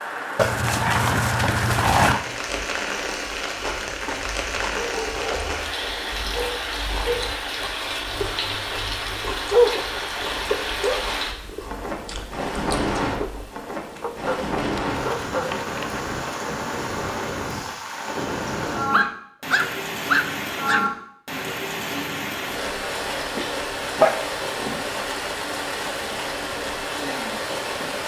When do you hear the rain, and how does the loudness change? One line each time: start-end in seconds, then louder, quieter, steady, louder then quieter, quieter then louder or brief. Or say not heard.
0.0-28.0 steady.